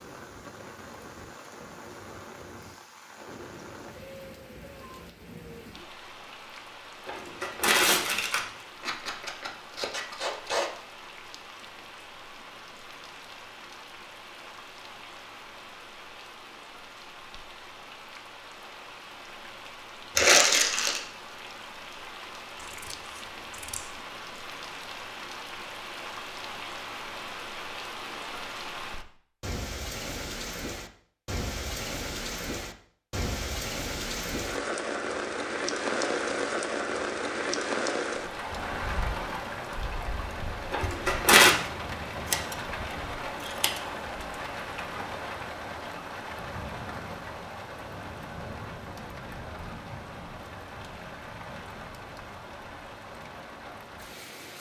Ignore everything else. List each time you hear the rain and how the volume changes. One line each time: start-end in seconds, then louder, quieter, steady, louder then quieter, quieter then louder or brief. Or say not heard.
0.0-54.5 louder then quieter.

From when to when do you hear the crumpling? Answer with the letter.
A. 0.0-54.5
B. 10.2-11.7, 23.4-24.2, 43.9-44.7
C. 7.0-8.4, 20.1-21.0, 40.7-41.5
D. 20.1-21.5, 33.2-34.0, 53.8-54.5
C.